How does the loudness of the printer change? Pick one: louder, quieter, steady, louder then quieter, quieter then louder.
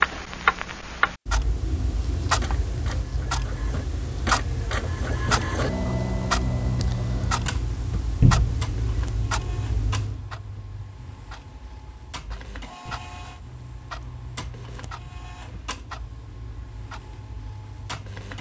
quieter.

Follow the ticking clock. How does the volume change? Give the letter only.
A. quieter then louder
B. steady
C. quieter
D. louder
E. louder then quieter
C.